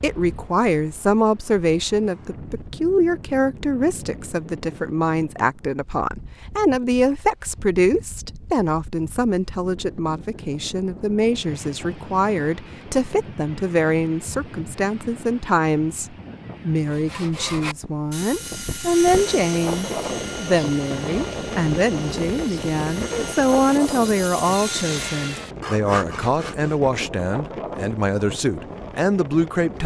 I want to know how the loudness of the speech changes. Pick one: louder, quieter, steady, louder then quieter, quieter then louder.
steady.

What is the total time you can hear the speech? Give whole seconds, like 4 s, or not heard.
30 s.